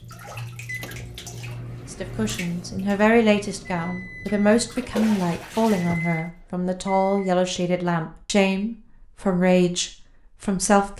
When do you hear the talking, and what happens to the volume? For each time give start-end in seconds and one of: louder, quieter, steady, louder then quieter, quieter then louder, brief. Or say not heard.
1.9-10.9 steady.